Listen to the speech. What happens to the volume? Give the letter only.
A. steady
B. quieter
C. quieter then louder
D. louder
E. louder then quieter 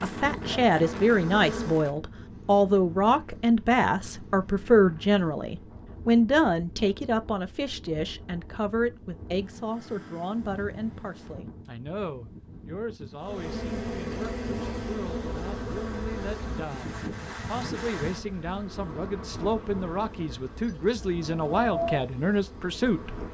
C.